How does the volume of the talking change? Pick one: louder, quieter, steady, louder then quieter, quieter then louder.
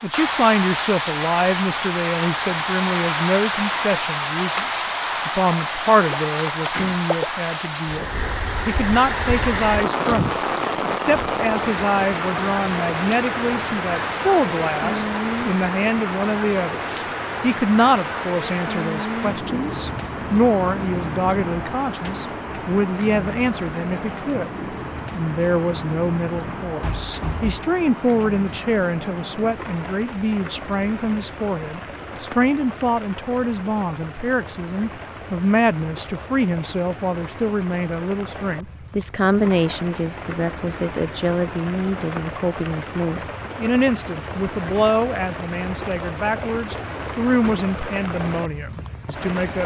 steady.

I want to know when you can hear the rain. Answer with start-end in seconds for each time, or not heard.
0.0-49.6.